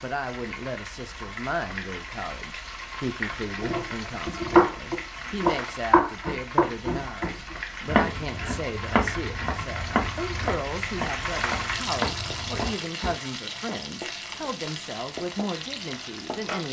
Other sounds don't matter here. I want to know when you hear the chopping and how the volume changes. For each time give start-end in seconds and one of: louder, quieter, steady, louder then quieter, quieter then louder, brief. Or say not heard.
3.6-13.2 quieter.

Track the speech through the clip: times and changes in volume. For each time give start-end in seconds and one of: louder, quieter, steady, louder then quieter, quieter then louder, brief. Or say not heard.
0.0-16.6 steady.